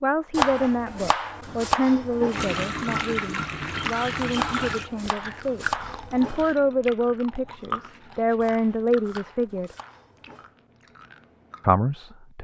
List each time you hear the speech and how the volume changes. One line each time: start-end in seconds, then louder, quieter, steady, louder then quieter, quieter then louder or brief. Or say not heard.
0.0-9.8 quieter then louder
11.6-12.3 brief.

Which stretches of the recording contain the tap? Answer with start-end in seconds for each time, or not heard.
2.3-4.9.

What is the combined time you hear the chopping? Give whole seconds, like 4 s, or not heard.
6 s.